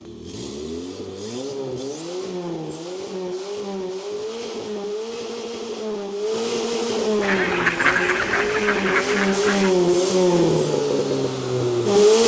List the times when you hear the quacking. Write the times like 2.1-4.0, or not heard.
7.2-9.8.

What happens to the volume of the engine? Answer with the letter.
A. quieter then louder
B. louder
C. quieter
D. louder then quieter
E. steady
B.